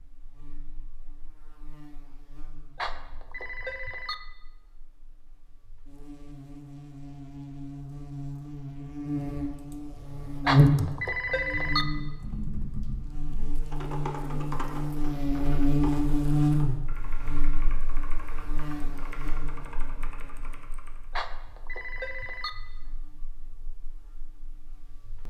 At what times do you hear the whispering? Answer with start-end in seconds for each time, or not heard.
not heard.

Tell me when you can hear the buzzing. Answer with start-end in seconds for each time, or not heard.
0.0-25.2.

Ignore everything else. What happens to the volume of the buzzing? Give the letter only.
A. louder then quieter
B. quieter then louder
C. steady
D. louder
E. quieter
A.